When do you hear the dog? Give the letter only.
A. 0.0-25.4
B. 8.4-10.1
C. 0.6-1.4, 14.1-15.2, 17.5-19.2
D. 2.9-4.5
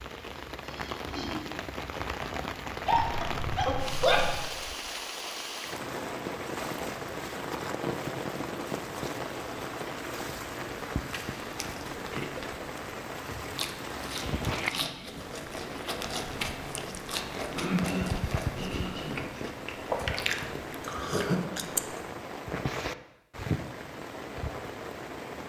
D.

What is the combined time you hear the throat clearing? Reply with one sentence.
You can hear the throat clearing for 4 seconds altogether.